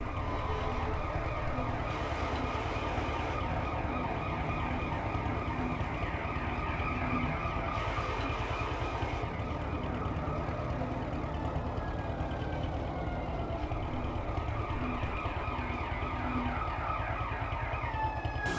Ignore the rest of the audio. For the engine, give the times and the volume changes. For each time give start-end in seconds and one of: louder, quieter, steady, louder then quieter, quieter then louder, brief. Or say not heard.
0.0-18.5 steady.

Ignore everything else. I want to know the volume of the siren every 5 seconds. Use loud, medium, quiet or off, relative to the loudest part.
loud, loud, medium, loud.